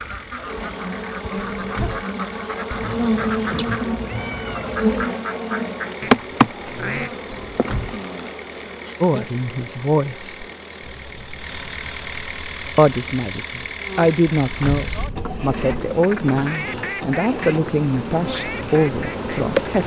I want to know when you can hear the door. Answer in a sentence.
The door can be heard from 1.4 to 2.0 s, from 7.3 to 8.0 s and from 14.4 to 14.9 s.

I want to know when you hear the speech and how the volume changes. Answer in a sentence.
The speech can be heard briefly from 9.0 to 10.4 s; and from 12.8 to 19.8 s, at a steady volume.